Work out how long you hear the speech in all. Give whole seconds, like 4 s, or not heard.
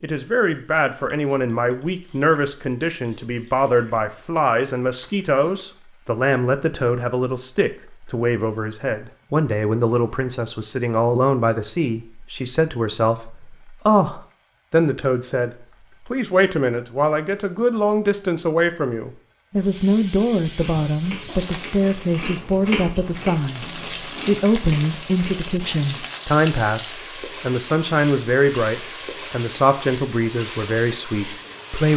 32 s.